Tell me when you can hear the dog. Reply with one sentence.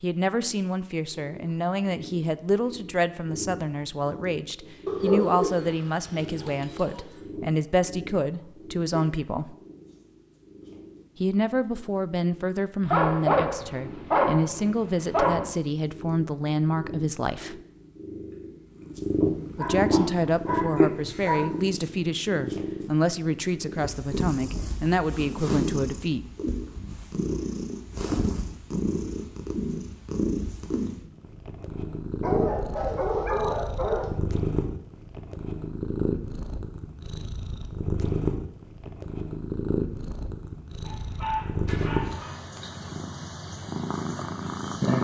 You can hear the dog from 4.8 to 7.0 s, from 12.8 to 15.4 s, from 19.6 to 21.4 s, from 32.2 to 34.1 s and from 40.9 to 42.4 s.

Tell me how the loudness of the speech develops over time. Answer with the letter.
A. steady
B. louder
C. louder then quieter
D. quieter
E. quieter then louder
A.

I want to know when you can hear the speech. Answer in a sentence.
The speech can be heard from 0.0 to 9.6 s, from 11.2 to 17.6 s and from 19.6 to 26.2 s.